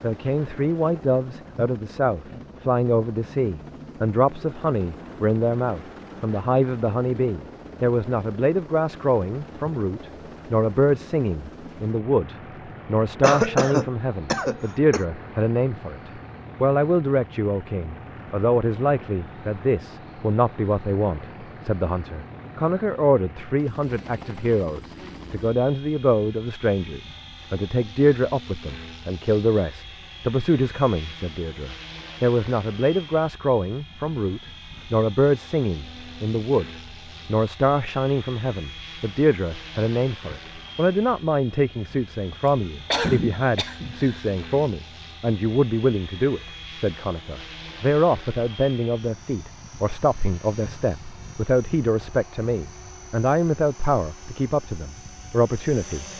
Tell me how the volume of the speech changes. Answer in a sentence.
The volume of the speech stays about the same.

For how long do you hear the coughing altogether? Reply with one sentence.
The coughing can be heard for 4 seconds in total.